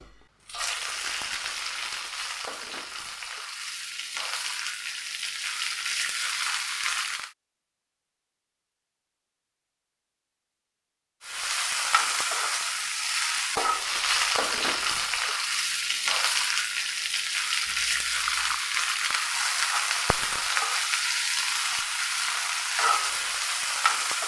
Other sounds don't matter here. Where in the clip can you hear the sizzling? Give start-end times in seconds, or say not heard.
0.0-7.3, 11.2-24.2.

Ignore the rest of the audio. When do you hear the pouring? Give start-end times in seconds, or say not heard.
17.6-18.6.